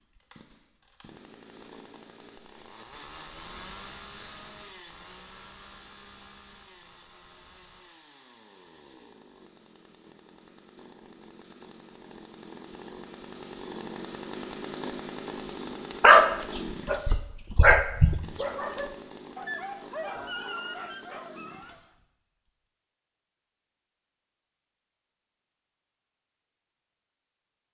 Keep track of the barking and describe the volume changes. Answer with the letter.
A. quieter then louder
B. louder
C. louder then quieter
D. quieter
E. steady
C.